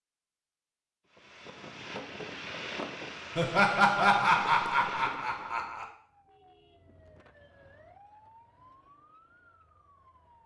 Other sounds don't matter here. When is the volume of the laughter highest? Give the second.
4 s.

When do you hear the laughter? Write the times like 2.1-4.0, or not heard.
3.4-5.8.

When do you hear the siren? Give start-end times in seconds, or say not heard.
6.0-10.4.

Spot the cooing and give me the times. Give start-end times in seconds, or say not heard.
not heard.